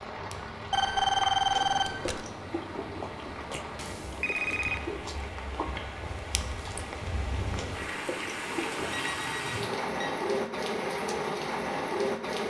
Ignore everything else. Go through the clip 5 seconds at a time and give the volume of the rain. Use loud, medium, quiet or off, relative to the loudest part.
medium, medium, loud.